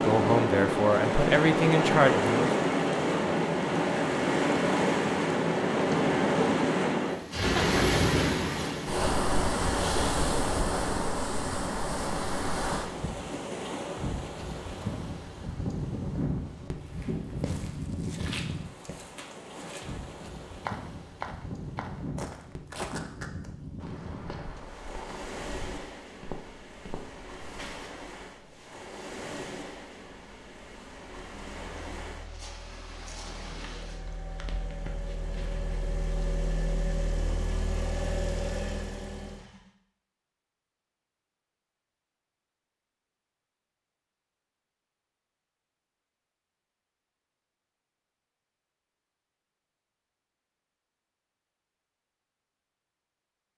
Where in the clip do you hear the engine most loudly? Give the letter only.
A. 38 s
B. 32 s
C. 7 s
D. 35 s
A.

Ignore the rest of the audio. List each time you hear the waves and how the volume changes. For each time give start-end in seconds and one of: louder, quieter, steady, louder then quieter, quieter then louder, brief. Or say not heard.
0.0-34.0 quieter.